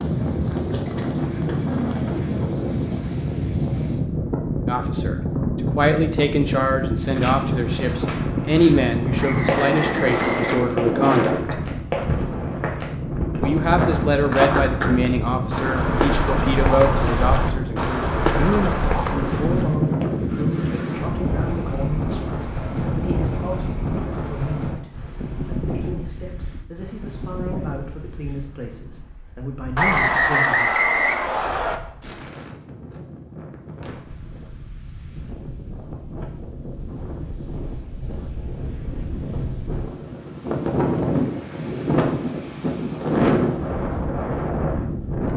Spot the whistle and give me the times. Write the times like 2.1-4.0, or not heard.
9.2-10.6, 29.8-31.8.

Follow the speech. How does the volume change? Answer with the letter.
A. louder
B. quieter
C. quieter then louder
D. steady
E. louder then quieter
B.